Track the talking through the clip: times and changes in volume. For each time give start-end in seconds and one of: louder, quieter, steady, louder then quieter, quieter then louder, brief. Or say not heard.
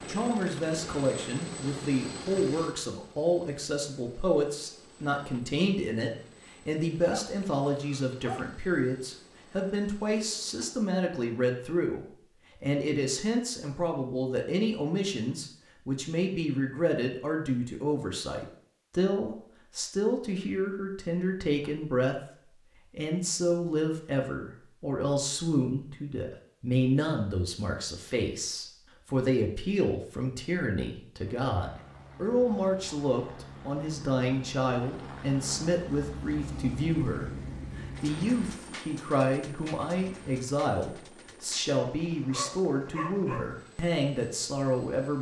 0.1-45.1 steady.